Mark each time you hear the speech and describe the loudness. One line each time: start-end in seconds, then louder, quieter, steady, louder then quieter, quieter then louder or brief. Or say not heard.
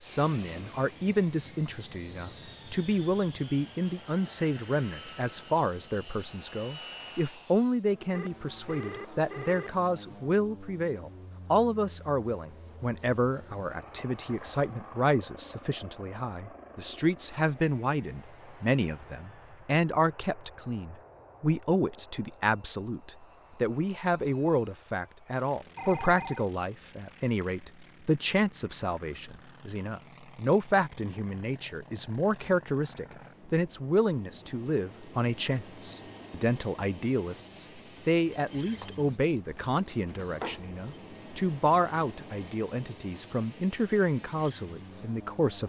0.0-45.6 steady.